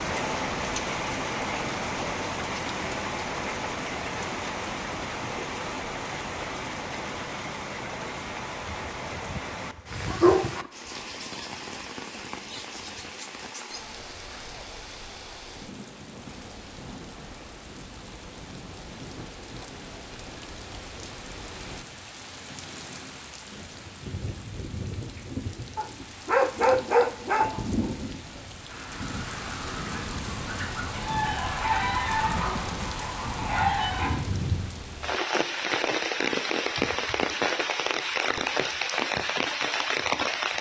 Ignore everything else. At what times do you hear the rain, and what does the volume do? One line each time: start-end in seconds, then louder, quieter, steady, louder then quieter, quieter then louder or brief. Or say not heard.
0.0-40.5 quieter then louder.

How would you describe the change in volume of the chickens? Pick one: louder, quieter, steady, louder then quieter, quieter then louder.
louder.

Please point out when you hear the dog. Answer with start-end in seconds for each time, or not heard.
8.7-10.5, 25.8-27.5.